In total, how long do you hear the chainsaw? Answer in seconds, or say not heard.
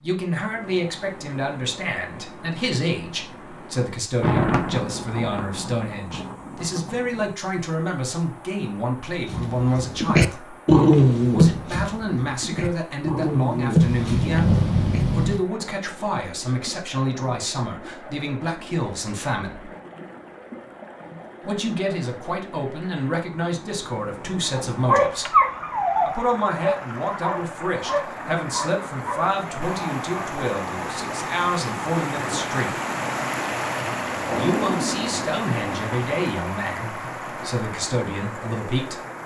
not heard.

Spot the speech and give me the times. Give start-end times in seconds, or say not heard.
0.0-10.6, 11.3-19.7, 21.4-25.4, 26.1-32.8, 34.4-39.0.